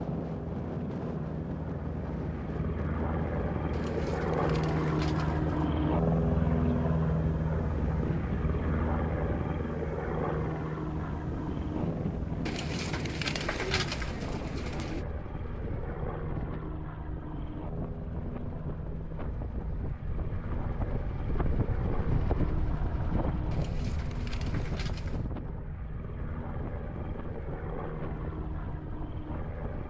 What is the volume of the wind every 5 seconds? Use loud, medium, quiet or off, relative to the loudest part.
loud, loud, loud, medium, loud, medium.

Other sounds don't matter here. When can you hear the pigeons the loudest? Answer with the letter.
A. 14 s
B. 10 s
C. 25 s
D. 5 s
A.